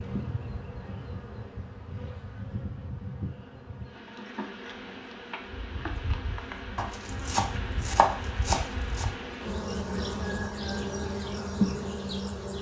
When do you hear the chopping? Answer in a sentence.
The chopping can be heard from 6.8 to 9.1 s.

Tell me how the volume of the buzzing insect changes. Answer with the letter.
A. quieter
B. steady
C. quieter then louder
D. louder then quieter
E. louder
E.